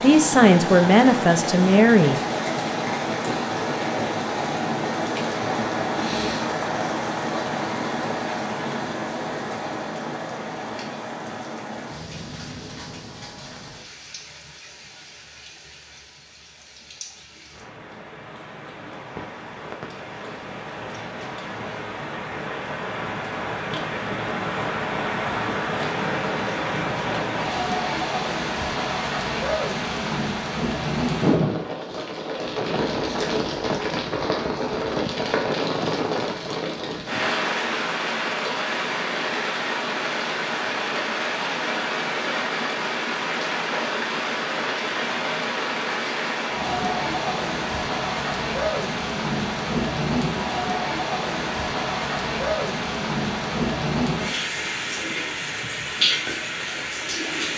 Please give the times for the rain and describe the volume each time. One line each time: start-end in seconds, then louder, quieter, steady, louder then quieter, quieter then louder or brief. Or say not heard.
0.0-57.5 quieter then louder.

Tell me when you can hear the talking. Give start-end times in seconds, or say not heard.
0.0-2.2.